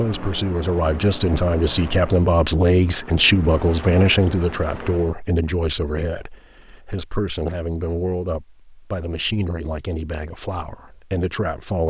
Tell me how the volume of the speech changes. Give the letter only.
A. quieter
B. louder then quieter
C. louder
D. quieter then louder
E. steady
A.